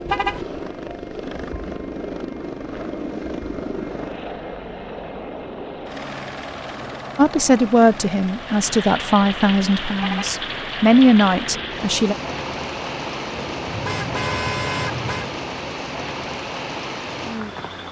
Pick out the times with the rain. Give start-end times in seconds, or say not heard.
8.3-17.8.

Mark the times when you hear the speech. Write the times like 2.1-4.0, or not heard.
7.2-12.2.